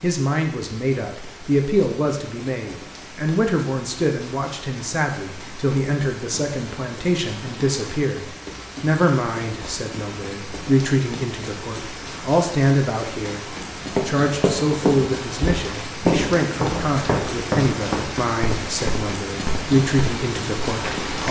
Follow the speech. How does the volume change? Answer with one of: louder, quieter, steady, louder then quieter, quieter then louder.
steady.